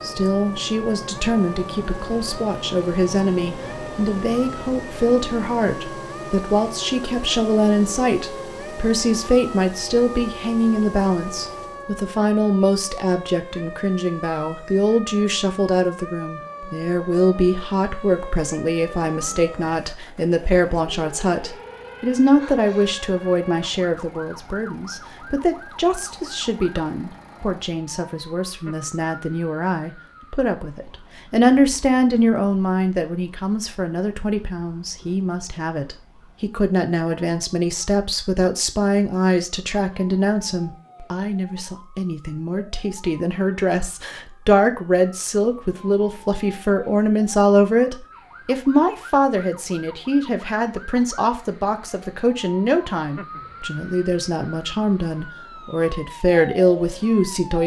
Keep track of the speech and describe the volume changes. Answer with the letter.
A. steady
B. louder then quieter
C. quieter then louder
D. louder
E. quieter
A.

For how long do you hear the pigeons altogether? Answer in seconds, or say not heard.
not heard.